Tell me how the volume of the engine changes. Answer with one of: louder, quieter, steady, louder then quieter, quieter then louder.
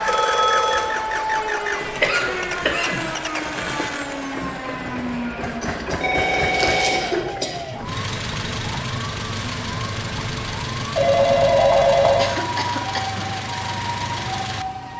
steady.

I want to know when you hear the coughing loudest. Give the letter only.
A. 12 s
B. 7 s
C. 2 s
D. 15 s
C.